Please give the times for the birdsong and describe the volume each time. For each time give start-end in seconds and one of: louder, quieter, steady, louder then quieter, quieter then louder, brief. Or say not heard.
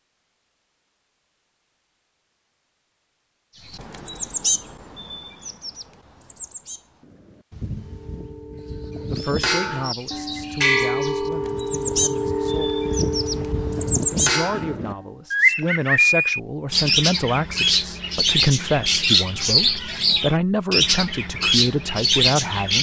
3.7-22.7 quieter then louder.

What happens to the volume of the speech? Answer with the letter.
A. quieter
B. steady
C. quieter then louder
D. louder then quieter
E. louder
E.